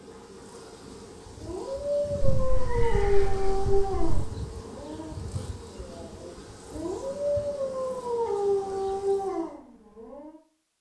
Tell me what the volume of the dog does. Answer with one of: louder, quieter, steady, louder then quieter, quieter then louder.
quieter then louder.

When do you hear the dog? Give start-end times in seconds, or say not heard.
1.4-10.4.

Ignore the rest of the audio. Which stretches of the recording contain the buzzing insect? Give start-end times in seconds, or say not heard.
0.0-9.5.